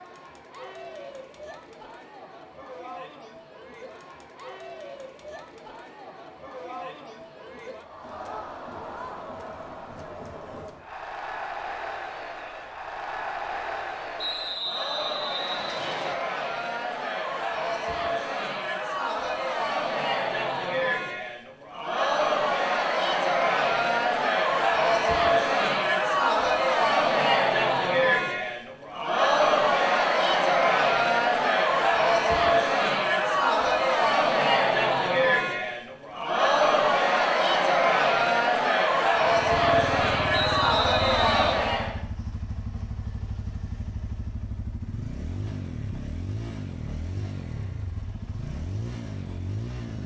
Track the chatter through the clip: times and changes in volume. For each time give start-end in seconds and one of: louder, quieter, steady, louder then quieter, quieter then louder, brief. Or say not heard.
0.0-42.0 louder.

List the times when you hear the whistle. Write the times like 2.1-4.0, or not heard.
14.2-16.1, 40.3-41.5.